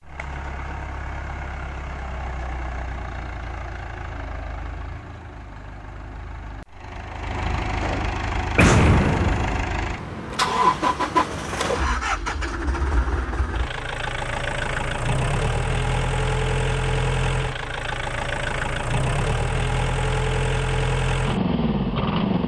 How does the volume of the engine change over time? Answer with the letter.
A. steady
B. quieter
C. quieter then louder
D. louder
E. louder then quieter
D.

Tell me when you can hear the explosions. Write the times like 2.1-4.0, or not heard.
8.6-9.7.